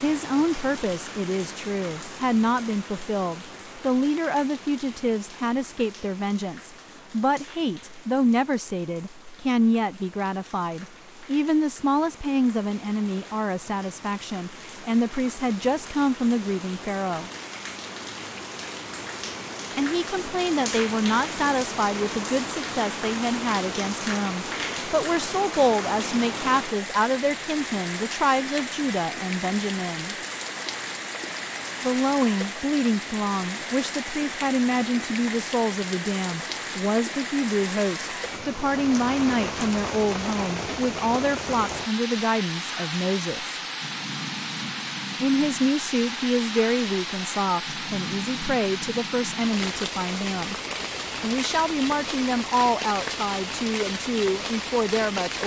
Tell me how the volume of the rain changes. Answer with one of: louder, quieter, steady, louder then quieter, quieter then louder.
louder.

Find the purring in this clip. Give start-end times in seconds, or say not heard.
not heard.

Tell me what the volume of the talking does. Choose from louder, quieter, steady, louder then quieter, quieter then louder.
steady.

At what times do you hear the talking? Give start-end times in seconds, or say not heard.
0.0-17.3, 19.8-30.1, 31.8-43.6, 45.2-50.5, 51.2-55.4.